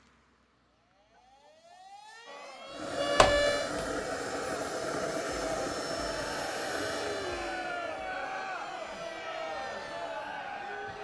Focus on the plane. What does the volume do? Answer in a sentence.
The loudness of the plane goes down.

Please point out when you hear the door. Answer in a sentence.
You can hear the door from 3.1 to 3.9 s.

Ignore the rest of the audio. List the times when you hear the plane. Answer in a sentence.
You can hear the plane from 2.6 to 11.0 s.